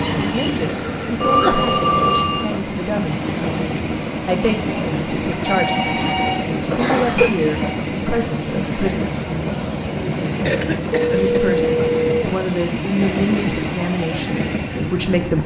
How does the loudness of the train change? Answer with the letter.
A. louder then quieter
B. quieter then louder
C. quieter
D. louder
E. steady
E.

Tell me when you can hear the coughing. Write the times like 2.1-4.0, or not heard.
0.5-1.6, 6.0-7.3, 10.4-11.4.